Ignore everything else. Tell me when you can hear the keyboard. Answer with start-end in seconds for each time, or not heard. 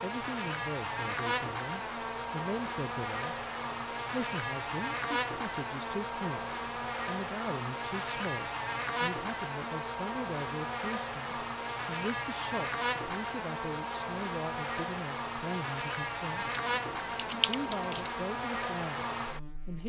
16.5-18.1.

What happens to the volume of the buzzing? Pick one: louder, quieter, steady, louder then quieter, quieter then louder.
steady.